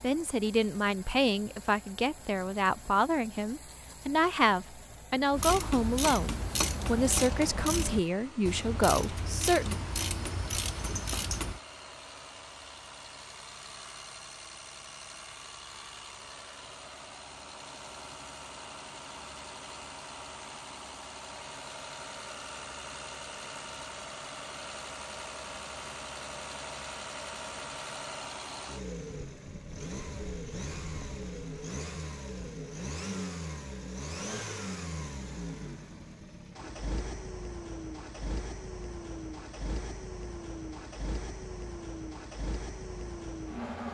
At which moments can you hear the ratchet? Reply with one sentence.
The ratchet can be heard from 5.3 to 11.6 s.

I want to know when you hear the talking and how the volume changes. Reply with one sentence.
You can hear the talking from 0.0 to 9.8 s, at a steady volume.